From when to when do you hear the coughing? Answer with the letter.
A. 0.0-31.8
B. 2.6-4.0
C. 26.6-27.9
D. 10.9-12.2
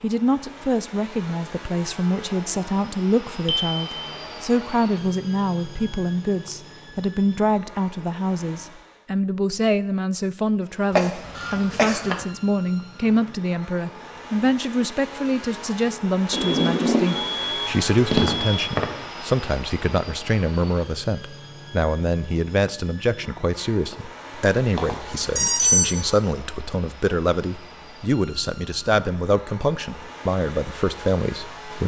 D.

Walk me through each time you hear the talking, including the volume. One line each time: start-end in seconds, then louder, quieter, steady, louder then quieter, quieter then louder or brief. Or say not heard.
0.0-31.8 steady.